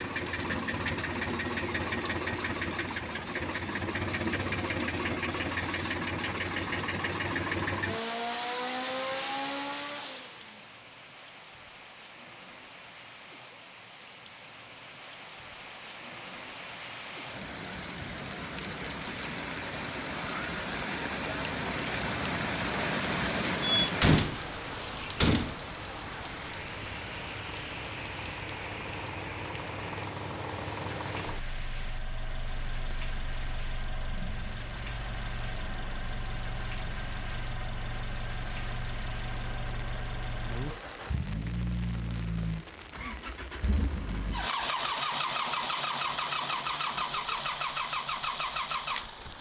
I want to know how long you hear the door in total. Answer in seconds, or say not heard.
2 s.